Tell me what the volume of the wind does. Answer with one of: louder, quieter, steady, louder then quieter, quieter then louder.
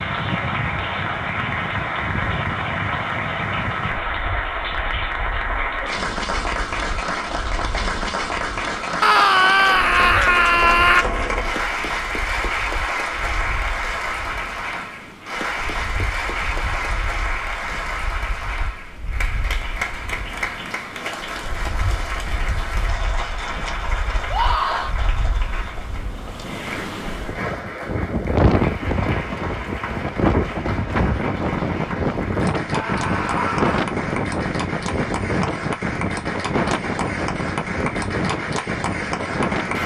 quieter then louder.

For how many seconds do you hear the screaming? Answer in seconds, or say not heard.
4 s.